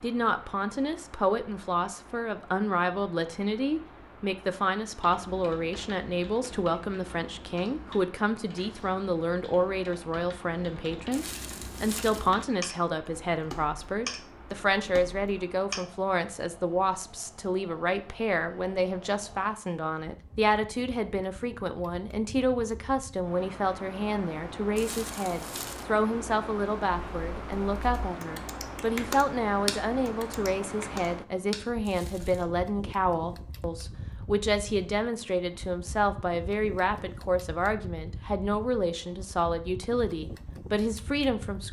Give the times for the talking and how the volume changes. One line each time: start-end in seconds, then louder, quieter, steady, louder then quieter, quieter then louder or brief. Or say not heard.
0.0-41.6 steady.